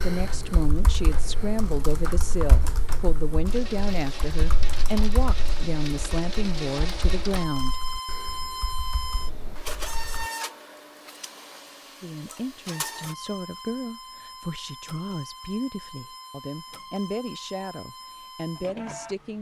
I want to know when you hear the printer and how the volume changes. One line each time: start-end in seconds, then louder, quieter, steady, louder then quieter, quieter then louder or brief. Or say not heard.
0.1-19.3 louder then quieter.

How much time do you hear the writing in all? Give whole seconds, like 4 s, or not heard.
not heard.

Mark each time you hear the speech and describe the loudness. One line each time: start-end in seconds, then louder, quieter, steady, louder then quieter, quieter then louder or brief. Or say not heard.
0.0-7.8 steady
12.0-19.3 steady.